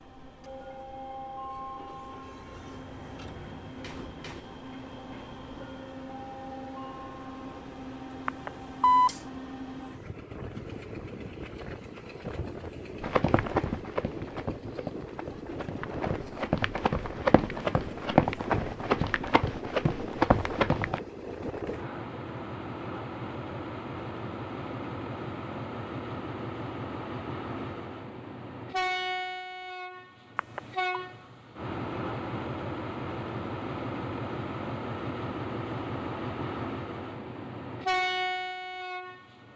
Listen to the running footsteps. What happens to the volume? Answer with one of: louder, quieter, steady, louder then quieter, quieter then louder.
quieter then louder.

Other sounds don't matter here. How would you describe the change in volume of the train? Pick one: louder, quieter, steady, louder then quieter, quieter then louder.
louder.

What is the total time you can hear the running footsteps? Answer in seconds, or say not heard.
8 s.